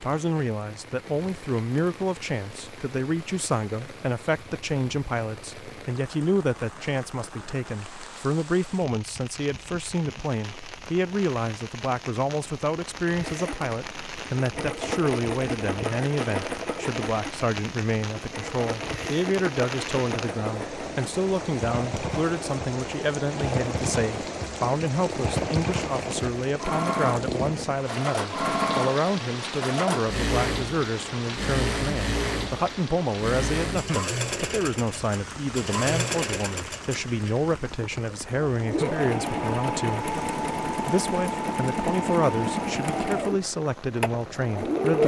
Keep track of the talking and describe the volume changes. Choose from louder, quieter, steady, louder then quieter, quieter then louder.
steady.